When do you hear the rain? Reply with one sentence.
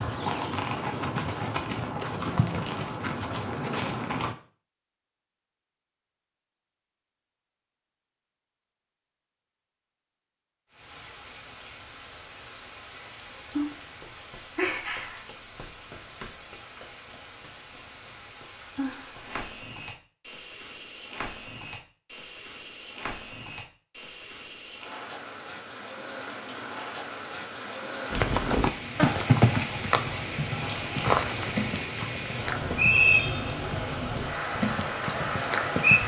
The rain can be heard from 10.7 to 36.0 s.